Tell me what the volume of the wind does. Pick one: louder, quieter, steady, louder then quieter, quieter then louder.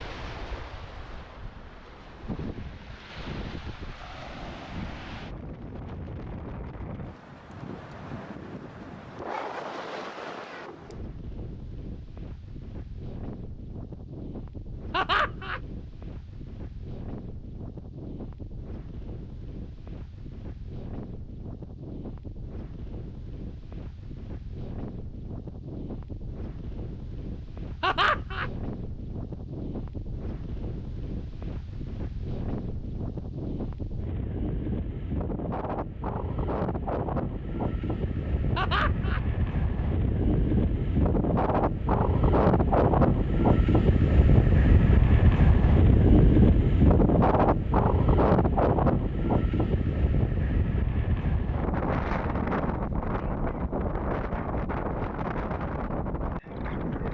louder.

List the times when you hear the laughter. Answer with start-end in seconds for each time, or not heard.
14.9-15.6, 27.8-28.5, 38.5-39.2.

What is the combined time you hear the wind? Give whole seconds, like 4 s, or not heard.
57 s.